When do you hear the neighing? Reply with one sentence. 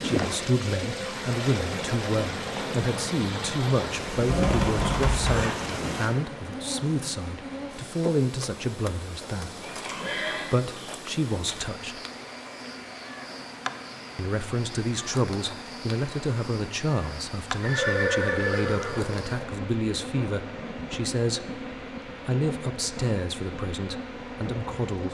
The neighing can be heard from 4.2 to 5.5 s, from 9.6 to 10.5 s and from 17.6 to 19.4 s.